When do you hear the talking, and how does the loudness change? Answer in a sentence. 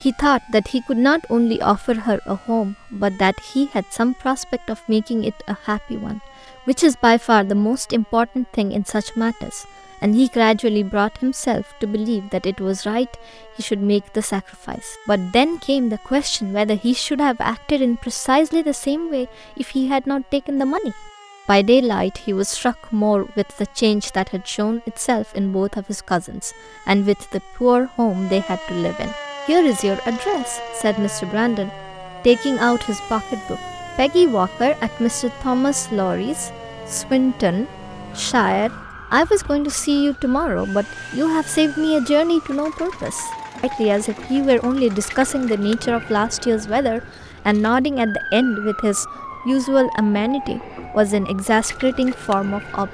You can hear the talking from 0.0 to 52.8 s, at a steady volume.